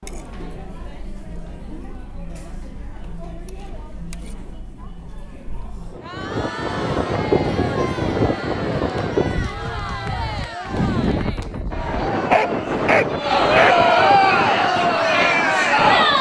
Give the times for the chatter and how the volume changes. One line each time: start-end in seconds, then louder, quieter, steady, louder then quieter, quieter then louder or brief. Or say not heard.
0.0-16.1 louder.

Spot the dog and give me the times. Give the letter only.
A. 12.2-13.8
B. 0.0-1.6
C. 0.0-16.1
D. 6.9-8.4
A.